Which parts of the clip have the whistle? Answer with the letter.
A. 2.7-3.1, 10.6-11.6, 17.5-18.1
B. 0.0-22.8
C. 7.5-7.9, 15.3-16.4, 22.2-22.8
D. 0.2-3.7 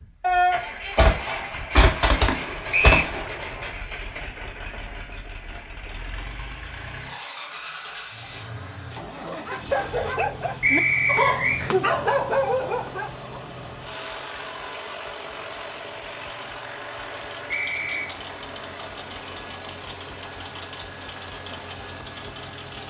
A.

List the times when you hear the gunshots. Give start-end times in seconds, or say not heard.
0.2-3.7.